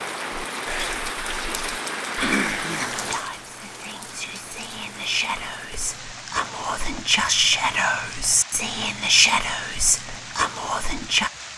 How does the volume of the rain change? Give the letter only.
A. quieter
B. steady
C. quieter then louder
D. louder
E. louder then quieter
A.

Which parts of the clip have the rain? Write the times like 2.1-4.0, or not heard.
0.0-11.5.